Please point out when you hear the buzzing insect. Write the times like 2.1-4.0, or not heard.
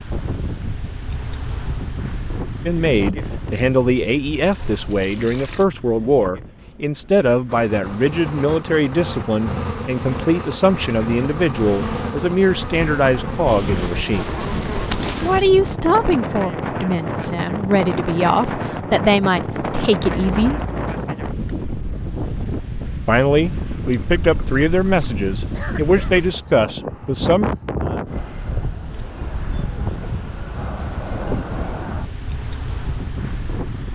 7.5-15.4.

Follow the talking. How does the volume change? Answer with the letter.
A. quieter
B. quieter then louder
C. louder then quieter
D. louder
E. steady
E.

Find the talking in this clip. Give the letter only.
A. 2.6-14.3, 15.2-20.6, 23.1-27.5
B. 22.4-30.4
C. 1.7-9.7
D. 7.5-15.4
A.